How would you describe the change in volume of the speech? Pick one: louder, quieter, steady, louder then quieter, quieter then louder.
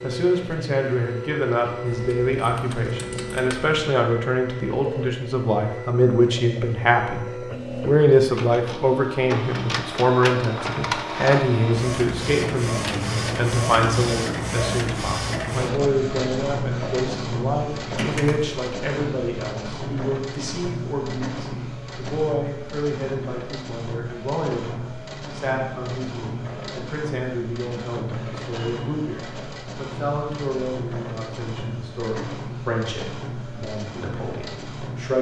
quieter.